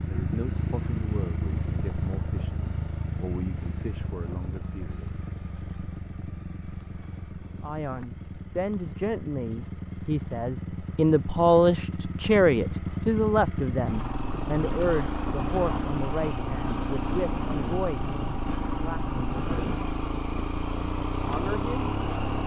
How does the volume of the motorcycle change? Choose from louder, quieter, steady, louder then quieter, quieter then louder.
quieter then louder.